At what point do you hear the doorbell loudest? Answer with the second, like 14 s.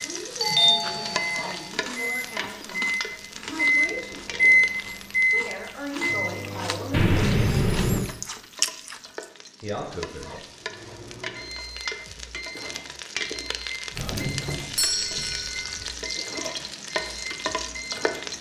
1 s.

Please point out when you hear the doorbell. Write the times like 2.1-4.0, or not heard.
0.4-1.7, 6.9-8.1, 13.9-15.8.